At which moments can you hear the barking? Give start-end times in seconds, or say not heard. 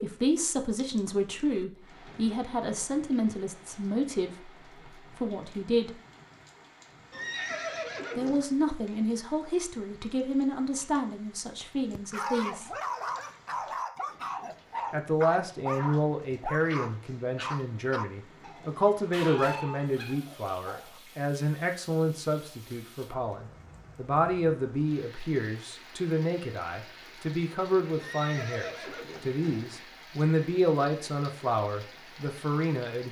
11.9-21.0.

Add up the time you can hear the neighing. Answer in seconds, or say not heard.
3 s.